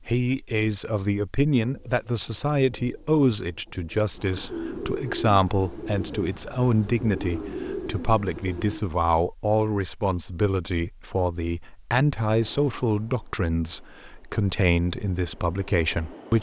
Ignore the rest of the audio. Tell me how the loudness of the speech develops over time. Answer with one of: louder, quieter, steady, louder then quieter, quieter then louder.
steady.